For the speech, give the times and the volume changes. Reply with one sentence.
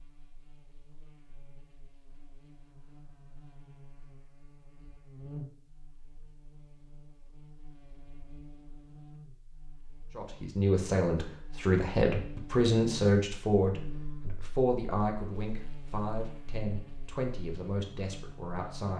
The speech can be heard from 10.2 to 18.9 s, getting quieter.